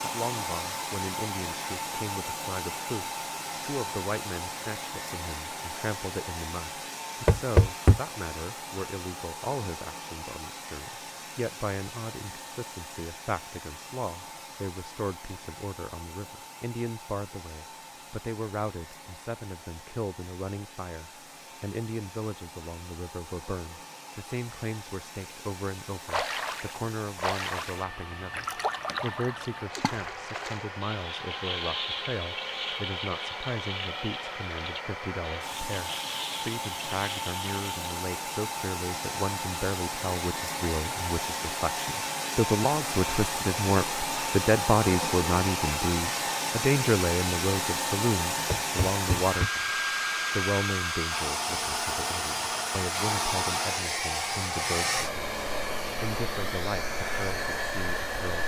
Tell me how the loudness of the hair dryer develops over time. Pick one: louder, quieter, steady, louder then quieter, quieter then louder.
quieter then louder.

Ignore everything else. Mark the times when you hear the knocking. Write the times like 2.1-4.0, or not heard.
7.2-8.0, 48.5-49.5.